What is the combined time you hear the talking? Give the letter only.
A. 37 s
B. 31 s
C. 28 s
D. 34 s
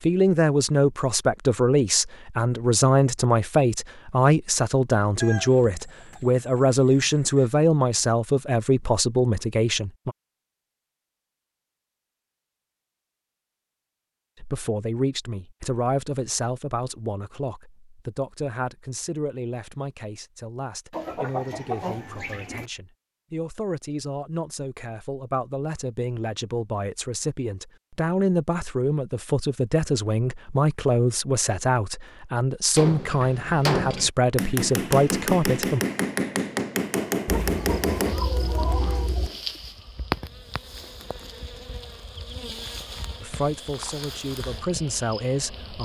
D.